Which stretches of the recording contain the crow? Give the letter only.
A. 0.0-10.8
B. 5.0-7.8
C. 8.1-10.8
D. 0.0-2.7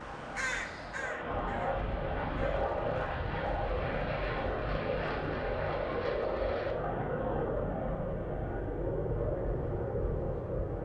D.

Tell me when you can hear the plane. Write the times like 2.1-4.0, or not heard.
0.0-10.8.